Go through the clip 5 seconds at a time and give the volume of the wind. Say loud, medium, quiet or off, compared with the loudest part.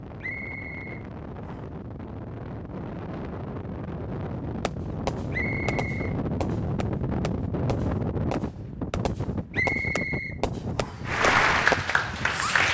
medium, loud, medium.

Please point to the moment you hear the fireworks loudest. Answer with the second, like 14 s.
12 s.